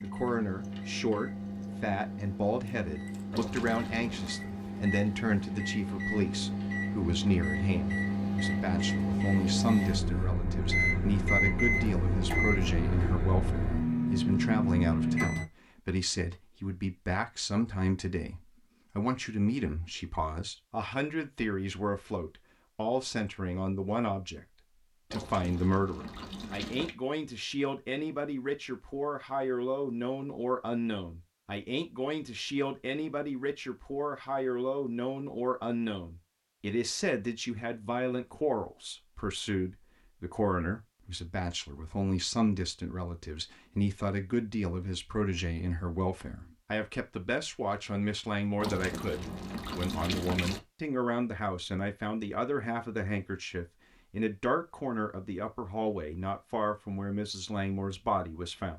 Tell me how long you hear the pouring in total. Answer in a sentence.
The pouring can be heard for 5 seconds in total.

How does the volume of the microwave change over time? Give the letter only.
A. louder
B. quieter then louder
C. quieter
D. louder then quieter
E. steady
A.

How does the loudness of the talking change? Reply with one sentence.
The loudness of the talking stays about the same.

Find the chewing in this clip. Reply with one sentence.
The chewing can't be heard in this clip.